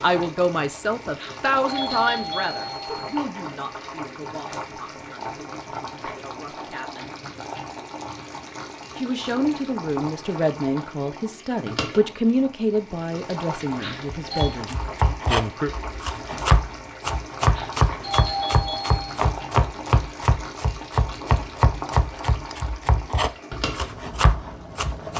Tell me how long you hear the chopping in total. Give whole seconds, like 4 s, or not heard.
11 s.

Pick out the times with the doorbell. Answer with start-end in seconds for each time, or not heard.
1.1-3.1, 13.8-14.6, 17.5-19.2.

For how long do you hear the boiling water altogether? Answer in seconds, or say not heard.
25 s.